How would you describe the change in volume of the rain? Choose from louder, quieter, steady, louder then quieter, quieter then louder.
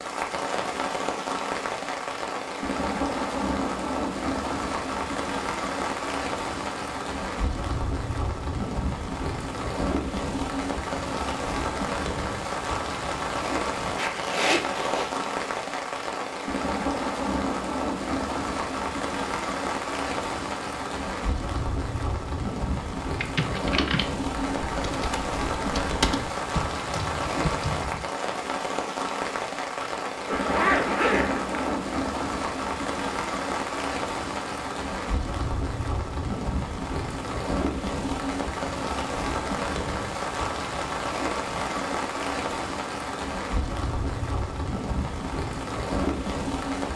steady.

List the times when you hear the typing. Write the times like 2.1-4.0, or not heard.
23.2-28.1.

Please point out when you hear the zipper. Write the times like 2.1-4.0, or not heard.
13.9-15.2, 29.8-31.8.